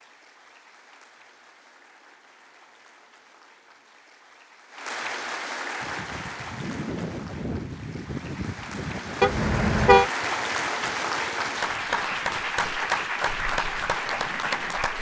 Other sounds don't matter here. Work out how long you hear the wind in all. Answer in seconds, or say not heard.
9 s.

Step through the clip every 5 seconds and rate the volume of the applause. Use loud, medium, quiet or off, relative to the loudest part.
quiet, medium, loud.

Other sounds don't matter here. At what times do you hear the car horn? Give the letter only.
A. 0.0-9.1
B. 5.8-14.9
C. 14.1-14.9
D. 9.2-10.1
D.